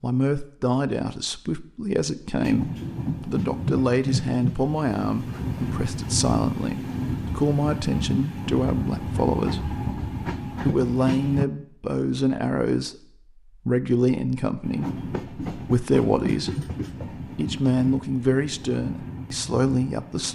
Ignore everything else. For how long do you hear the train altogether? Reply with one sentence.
The train can be heard for 15 seconds in total.